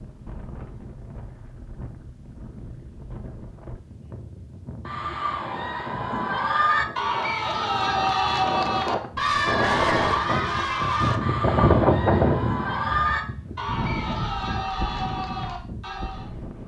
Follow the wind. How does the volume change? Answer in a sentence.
The loudness of the wind goes up, then down.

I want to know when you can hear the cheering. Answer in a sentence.
You can hear the cheering from 4.8 to 16.3 s.